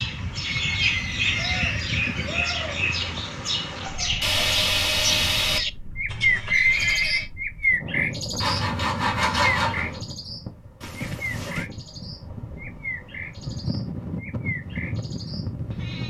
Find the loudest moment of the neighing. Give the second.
7 s.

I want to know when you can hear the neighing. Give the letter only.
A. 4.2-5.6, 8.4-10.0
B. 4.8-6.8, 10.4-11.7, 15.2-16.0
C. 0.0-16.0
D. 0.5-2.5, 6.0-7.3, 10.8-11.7
D.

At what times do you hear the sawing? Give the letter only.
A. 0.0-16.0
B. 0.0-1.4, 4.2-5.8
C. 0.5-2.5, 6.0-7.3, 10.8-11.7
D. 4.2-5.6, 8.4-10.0
D.